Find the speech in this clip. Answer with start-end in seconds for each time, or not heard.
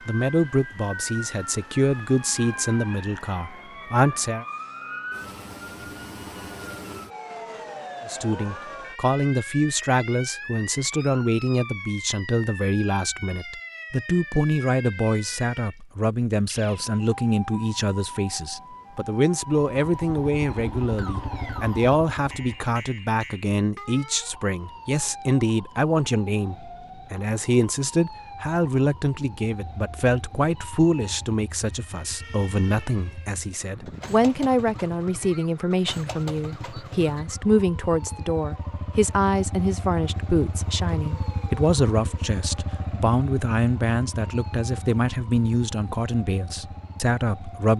0.1-4.5, 8.1-47.7.